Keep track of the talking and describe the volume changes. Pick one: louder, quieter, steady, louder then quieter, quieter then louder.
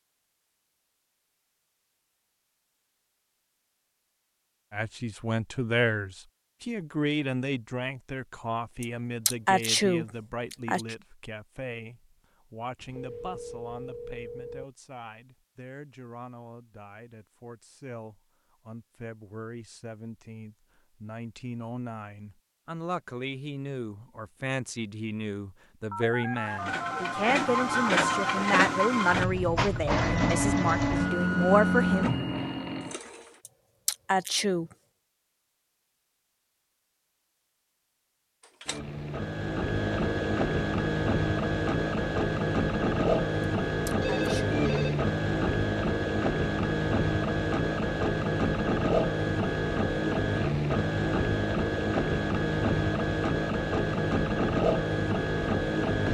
quieter then louder.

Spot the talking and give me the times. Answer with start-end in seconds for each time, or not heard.
4.7-32.1.